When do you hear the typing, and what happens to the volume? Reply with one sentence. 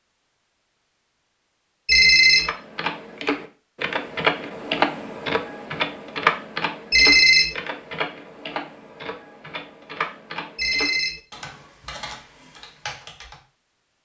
The typing can be heard from 2.4 to 13.4 s, getting quieter.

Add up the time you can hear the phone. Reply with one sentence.
You can hear the phone for 2 seconds altogether.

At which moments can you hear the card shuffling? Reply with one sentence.
The card shuffling can't be heard in this clip.